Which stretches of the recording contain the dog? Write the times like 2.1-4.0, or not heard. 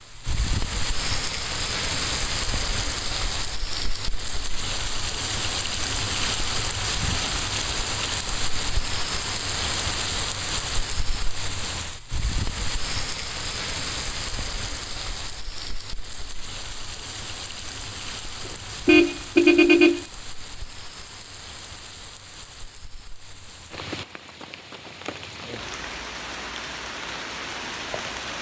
not heard.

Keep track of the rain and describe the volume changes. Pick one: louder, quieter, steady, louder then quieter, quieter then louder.
quieter.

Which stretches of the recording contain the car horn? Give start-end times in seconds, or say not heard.
18.4-20.1.